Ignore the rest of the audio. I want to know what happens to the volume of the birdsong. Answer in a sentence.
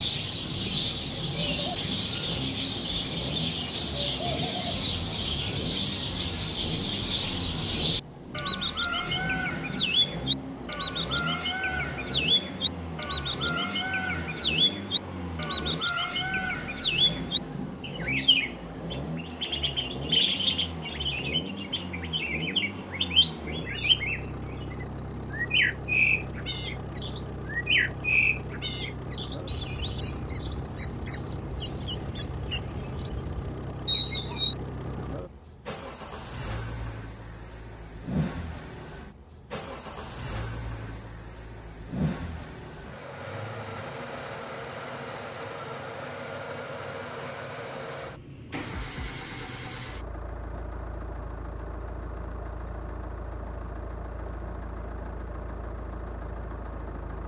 The volume of the birdsong stays about the same.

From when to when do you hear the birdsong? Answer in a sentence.
The birdsong can be heard from 0.0 to 34.5 s.